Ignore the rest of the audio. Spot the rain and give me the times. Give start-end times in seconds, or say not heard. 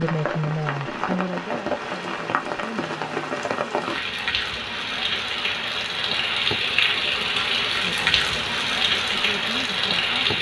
0.0-10.3.